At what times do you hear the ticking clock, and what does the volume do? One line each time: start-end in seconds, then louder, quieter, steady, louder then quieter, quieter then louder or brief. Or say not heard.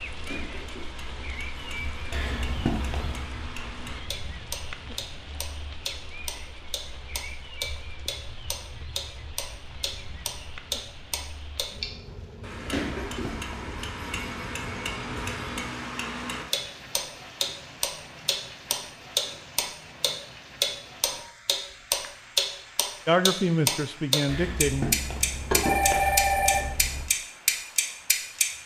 0.0-28.4 louder.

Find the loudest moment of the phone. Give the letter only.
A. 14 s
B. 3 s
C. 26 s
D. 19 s
C.